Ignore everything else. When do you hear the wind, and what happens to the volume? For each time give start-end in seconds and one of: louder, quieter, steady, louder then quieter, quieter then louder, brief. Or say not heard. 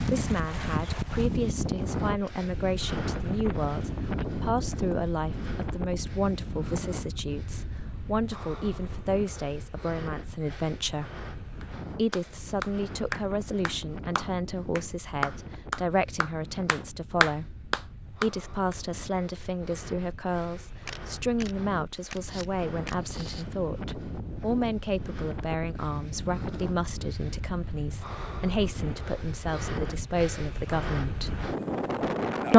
0.0-32.5 quieter then louder.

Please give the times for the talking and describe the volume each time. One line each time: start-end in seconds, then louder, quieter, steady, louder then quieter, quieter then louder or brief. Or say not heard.
0.0-11.2 steady
11.9-31.4 steady.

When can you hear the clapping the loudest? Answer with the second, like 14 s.
17 s.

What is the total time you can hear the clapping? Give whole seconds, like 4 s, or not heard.
7 s.